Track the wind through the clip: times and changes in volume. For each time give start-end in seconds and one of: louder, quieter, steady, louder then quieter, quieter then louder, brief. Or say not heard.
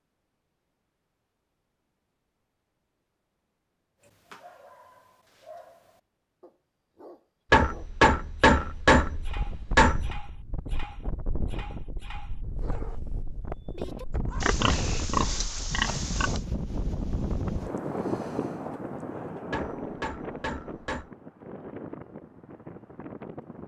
9.0-23.6 louder then quieter.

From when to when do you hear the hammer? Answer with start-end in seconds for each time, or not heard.
7.5-10.1, 19.5-21.1.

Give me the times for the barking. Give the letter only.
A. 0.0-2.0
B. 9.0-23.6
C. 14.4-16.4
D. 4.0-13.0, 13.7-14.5
D.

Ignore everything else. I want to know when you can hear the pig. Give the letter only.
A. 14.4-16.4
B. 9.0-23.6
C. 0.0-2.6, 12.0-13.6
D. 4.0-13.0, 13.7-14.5
A.